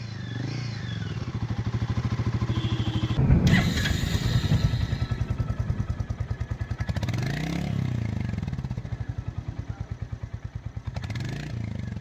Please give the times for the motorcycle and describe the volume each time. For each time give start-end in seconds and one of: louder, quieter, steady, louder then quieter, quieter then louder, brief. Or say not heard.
0.0-11.9 quieter.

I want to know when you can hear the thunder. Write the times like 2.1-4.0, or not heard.
3.1-6.0.